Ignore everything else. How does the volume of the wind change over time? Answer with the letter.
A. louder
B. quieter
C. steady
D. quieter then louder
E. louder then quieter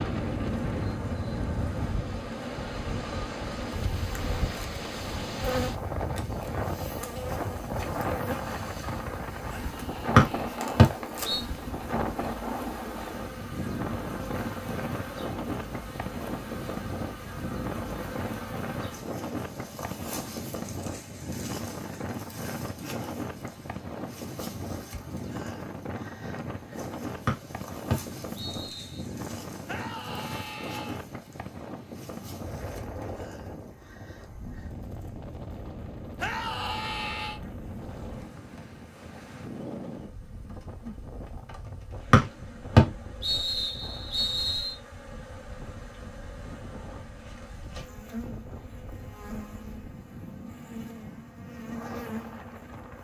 B.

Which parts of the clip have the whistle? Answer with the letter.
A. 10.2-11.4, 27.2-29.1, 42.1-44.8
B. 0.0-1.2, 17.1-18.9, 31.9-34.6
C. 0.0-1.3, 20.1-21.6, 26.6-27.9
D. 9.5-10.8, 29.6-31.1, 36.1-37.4
A.